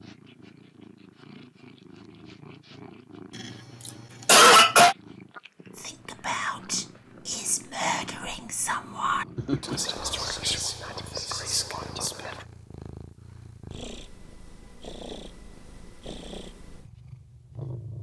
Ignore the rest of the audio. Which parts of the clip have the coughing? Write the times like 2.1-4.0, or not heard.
3.4-5.0, 9.3-10.3.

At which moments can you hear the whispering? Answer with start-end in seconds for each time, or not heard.
5.8-12.4.